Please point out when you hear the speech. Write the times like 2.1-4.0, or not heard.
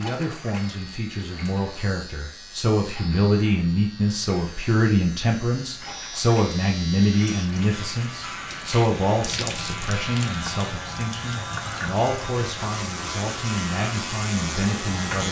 0.0-15.2.